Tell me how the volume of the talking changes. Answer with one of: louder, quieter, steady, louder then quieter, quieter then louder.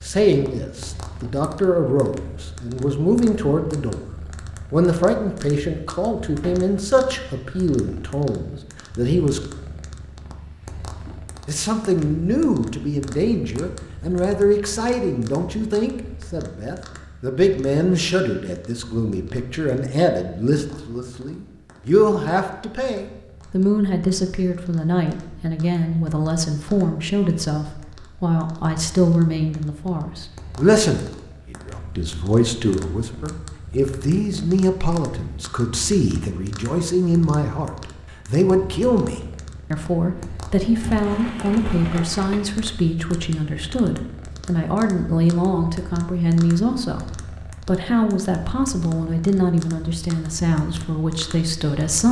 steady.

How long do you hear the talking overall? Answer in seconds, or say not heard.
49 s.